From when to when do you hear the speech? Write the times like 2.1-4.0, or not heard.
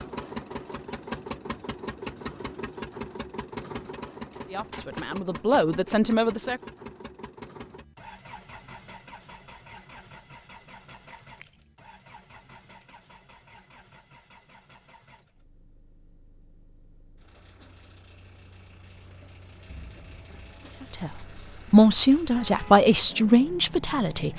4.5-6.6, 20.9-24.3.